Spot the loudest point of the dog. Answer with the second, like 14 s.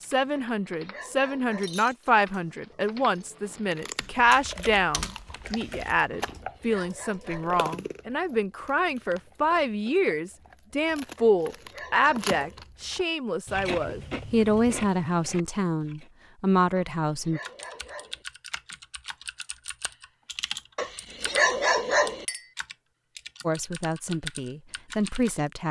22 s.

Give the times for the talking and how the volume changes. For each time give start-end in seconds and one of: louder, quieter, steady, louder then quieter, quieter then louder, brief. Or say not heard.
0.0-17.4 steady
23.4-25.6 brief.